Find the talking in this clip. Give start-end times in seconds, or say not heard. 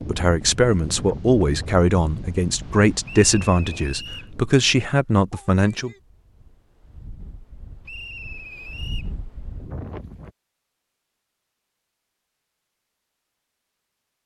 0.1-5.9.